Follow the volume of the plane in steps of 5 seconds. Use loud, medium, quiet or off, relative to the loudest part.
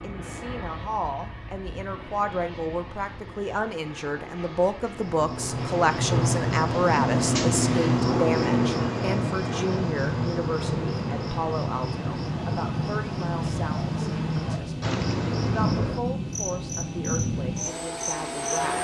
medium, medium, loud, loud.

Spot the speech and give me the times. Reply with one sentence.
The speech can be heard from 0.0 to 18.7 s.